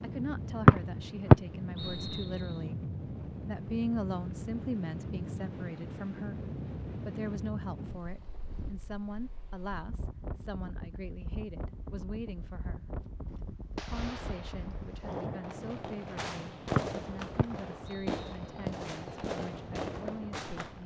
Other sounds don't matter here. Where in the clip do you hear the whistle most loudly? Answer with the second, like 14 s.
1 s.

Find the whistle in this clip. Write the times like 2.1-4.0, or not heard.
0.7-2.5, 16.8-18.6.